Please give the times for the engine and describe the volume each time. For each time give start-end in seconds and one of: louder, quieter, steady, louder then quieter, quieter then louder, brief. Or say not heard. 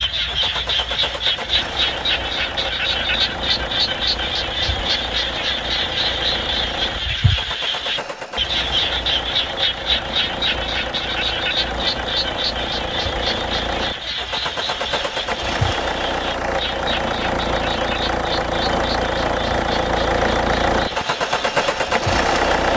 0.0-22.7 louder.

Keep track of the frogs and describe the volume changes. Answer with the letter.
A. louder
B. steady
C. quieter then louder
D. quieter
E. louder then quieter
D.